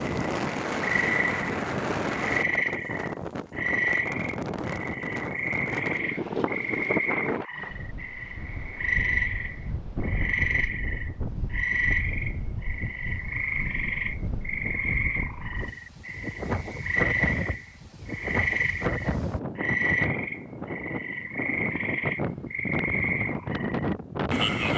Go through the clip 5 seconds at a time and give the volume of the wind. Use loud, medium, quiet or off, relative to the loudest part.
loud, loud, medium, loud, loud.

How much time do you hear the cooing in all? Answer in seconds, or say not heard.
not heard.